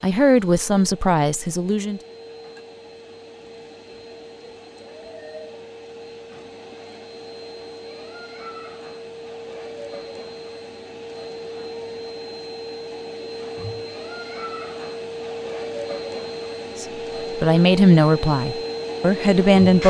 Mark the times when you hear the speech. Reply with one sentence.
The speech can be heard from 0.0 to 2.0 s and from 16.8 to 19.8 s.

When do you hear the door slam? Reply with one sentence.
You can't hear the door slam here.